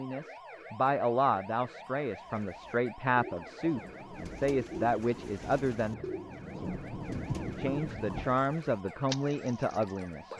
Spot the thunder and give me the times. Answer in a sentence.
You can hear the thunder from 3.6 to 8.3 s.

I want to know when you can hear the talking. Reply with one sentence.
The talking can be heard from 0.0 to 6.0 s and from 7.5 to 10.3 s.